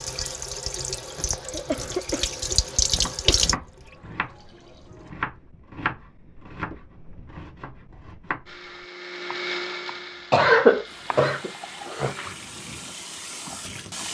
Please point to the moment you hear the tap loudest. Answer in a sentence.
The volume of the tap peaks at 3 seconds.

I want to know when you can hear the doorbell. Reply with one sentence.
The doorbell can't be heard in this clip.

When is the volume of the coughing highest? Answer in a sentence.
The loudest moment of the coughing is at 11 seconds.